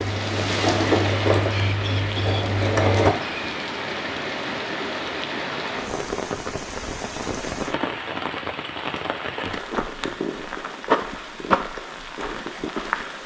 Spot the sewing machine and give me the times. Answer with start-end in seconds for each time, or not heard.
0.0-3.1.